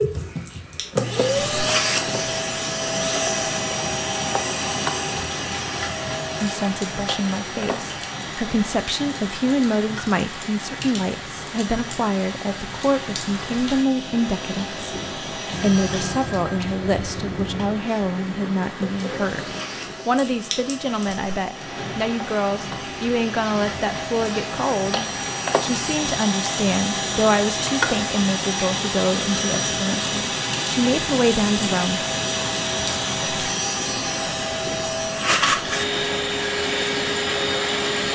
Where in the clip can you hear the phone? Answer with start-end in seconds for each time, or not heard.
15.5-17.8.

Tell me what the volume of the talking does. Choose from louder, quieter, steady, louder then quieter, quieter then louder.
steady.